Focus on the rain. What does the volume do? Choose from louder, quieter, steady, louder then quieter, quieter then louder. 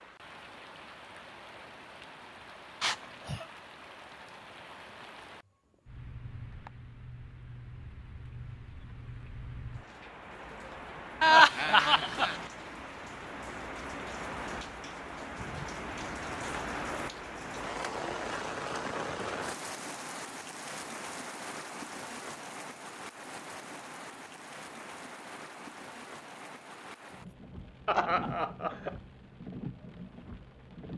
louder then quieter.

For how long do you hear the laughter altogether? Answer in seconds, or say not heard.
3 s.